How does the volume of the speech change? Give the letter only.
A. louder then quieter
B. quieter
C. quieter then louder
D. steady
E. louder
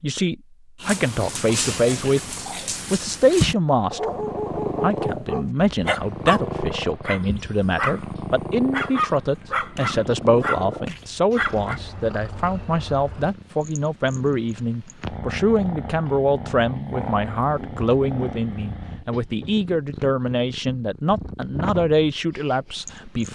D.